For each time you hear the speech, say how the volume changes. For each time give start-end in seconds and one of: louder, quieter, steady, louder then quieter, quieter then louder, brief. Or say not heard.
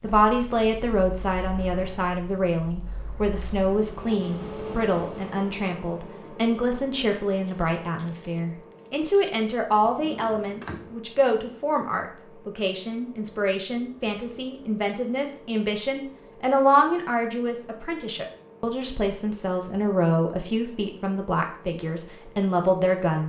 0.0-23.2 steady.